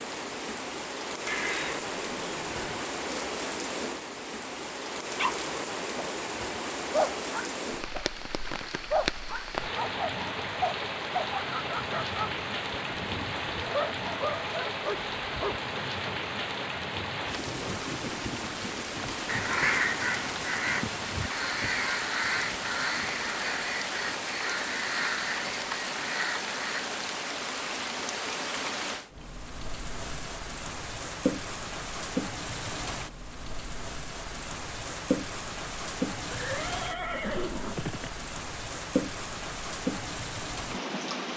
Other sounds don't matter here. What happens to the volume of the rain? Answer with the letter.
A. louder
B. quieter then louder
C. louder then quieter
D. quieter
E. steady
E.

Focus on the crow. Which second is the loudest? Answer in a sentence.
The volume of the crow peaks at 20 seconds.